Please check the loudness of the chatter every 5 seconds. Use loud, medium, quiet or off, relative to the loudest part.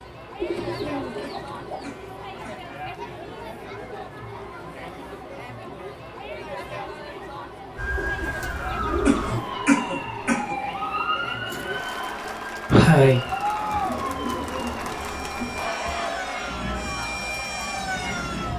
medium, medium, loud, loud.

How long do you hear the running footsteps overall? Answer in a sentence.
The running footsteps can't be heard in this clip.